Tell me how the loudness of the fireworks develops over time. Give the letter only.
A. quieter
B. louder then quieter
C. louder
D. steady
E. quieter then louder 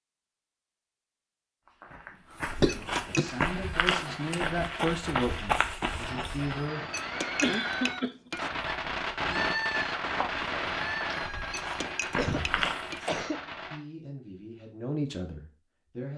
B.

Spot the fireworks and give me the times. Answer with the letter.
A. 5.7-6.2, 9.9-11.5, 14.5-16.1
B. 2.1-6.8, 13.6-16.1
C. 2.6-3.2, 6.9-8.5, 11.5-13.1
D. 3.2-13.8
D.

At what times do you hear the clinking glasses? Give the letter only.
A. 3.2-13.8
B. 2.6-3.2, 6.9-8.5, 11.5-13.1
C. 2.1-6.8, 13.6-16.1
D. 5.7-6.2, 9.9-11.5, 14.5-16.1
B.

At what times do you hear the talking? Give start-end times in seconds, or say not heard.
2.1-6.8, 13.6-16.1.